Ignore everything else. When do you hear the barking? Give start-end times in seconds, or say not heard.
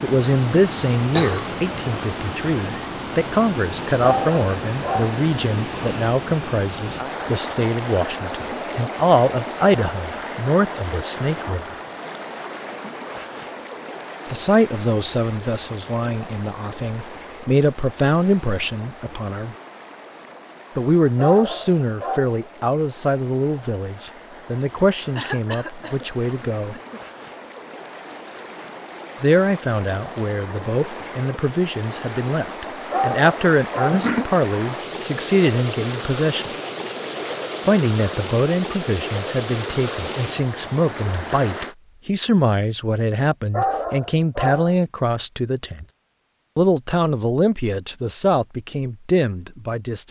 4.0-5.2, 21.1-22.4, 32.9-34.0, 43.5-44.8.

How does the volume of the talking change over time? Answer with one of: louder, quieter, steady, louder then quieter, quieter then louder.
steady.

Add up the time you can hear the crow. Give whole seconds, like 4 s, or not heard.
not heard.